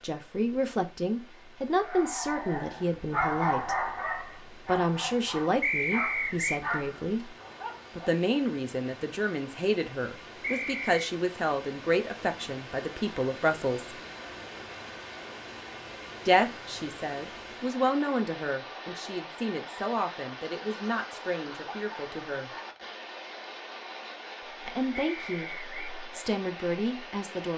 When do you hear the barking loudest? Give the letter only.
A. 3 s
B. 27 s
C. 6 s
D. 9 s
A.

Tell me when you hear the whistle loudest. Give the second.
6 s.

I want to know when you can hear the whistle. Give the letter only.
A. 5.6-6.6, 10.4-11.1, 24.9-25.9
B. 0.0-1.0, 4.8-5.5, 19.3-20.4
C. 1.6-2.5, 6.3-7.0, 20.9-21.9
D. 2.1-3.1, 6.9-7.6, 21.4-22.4
A.